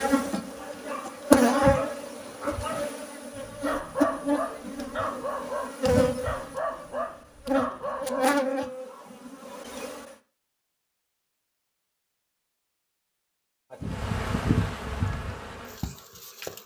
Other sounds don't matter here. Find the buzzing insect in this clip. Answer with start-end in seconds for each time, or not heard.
0.0-10.0, 13.8-16.6.